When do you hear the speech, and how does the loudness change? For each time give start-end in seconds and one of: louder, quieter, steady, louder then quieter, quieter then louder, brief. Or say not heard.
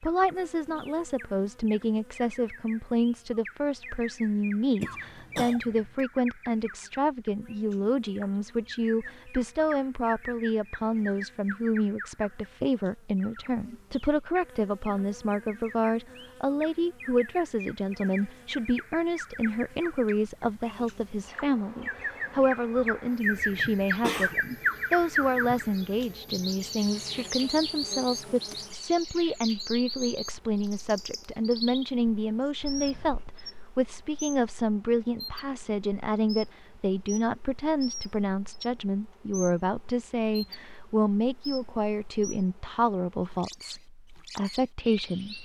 0.0-45.3 steady.